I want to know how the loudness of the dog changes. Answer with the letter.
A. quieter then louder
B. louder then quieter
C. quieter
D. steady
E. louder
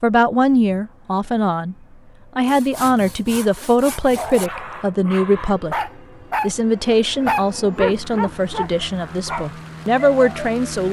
B.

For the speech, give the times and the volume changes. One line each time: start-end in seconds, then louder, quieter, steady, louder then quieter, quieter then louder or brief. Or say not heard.
0.0-1.8 brief
2.4-10.8 steady.